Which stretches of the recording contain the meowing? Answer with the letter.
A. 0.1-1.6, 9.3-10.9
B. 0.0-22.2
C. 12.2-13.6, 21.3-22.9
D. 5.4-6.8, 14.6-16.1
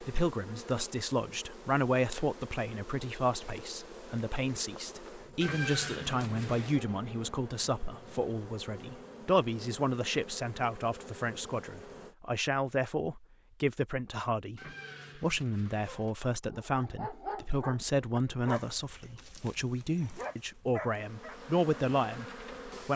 D.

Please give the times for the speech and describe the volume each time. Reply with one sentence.
The speech can be heard from 0.0 to 22.2 s, at a steady volume.